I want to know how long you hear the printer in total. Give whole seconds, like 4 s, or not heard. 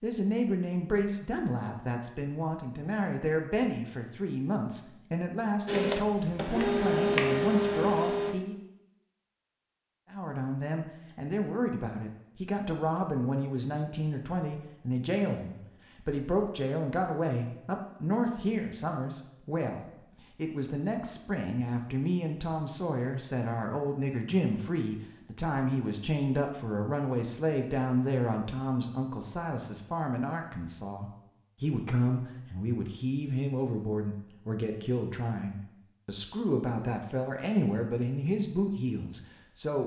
3 s.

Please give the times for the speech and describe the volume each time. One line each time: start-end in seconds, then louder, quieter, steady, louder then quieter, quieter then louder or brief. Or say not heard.
0.0-8.6 steady
10.1-39.8 steady.